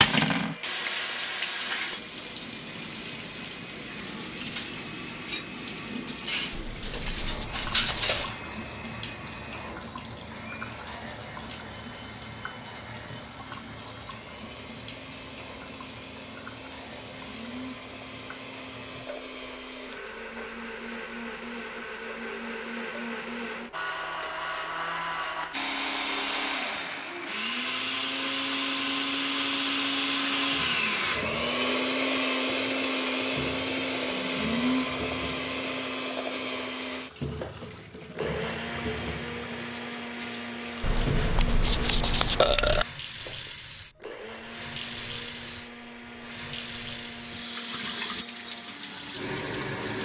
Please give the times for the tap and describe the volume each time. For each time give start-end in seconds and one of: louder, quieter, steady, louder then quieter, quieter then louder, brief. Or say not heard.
0.0-50.0 quieter then louder.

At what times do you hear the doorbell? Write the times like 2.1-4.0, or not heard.
not heard.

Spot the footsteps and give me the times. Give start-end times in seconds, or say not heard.
not heard.